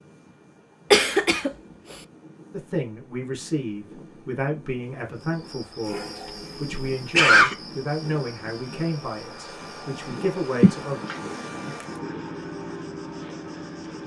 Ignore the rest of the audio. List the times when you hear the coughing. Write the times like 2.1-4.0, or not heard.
0.9-1.5, 6.7-7.5, 10.6-11.2.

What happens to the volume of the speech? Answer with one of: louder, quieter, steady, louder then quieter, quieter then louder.
steady.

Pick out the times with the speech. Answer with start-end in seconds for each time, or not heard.
2.5-11.1.